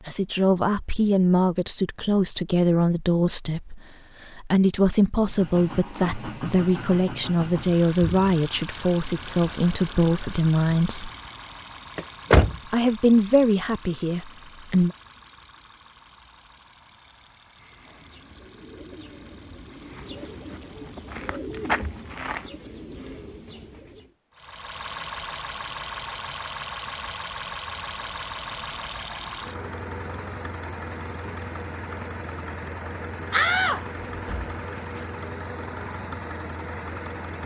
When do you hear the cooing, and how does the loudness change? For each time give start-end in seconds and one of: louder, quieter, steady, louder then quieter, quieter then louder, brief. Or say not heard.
17.6-24.1 louder then quieter.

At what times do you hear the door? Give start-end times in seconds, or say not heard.
11.9-12.6, 33.3-35.0.